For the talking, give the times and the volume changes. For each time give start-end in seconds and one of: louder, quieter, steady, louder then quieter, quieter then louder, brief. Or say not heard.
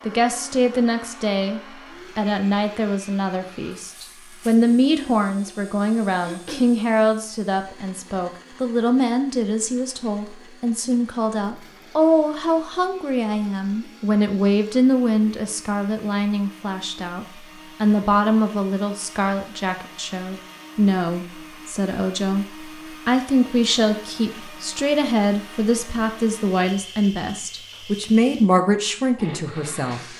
0.1-30.0 steady.